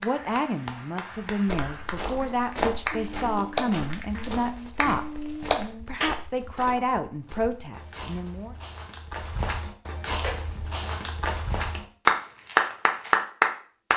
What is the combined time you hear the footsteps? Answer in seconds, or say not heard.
12 s.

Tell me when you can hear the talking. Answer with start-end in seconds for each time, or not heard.
0.0-8.6.